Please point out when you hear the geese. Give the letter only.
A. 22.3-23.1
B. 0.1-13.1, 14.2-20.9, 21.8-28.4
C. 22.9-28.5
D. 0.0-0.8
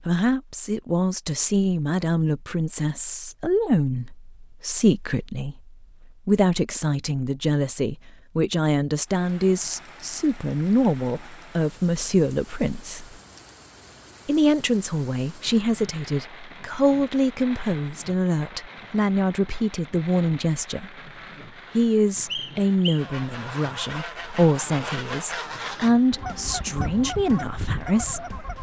C.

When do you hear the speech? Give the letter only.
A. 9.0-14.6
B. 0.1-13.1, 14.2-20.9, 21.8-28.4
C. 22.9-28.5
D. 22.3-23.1
B.